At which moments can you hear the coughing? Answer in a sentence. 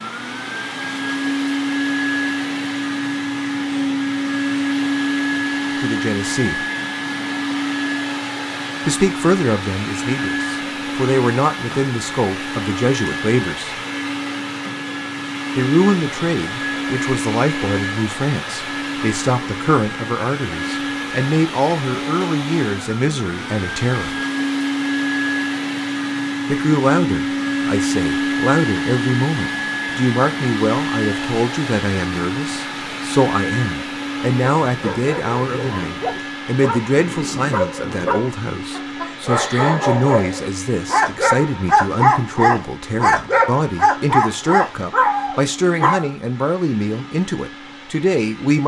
The coughing can't be heard in this clip.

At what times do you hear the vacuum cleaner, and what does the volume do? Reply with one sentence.
The vacuum cleaner can be heard from 0.0 to 48.6 s, getting quieter.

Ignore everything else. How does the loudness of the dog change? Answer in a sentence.
The volume of the dog goes up.